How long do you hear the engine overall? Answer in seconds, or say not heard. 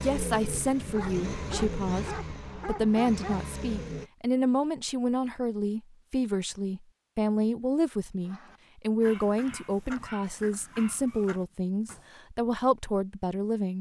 4 s.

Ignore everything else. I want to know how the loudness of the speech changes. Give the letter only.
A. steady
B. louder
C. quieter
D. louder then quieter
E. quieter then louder
A.